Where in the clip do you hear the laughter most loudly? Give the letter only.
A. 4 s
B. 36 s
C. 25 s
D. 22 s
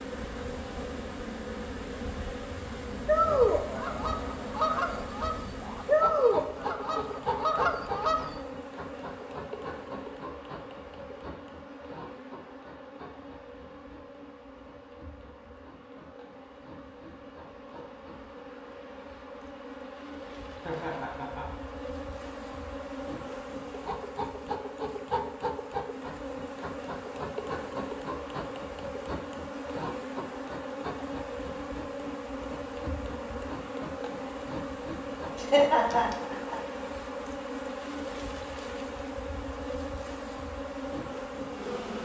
B.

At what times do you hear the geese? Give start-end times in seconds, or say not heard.
3.0-8.4.